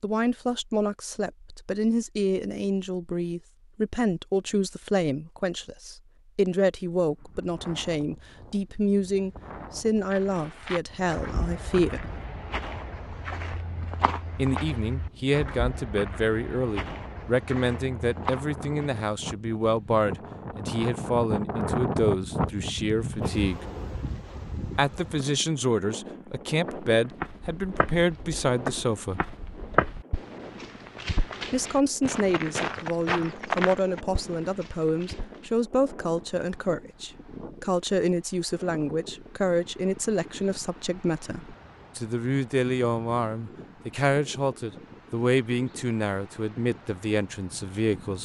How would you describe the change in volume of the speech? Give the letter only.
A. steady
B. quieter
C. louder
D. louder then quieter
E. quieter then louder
A.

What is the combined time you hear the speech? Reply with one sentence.
The speech can be heard for 43 seconds in total.